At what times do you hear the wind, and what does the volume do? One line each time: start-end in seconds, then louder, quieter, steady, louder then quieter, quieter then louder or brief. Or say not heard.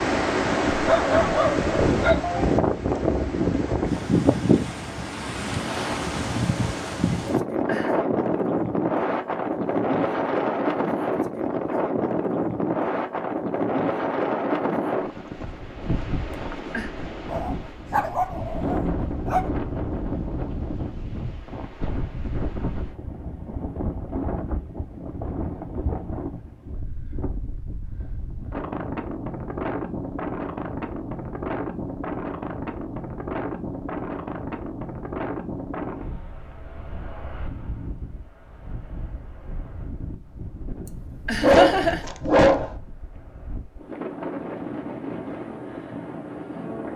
0.0-46.9 quieter.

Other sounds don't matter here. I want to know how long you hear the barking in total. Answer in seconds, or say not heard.
5 s.